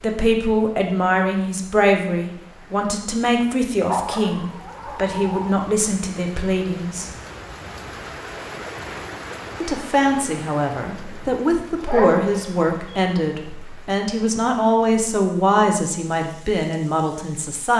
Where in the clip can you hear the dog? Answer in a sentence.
The dog can be heard from 3.9 to 5.5 s and from 11.8 to 13.0 s.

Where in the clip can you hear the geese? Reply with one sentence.
The geese can't be heard in this clip.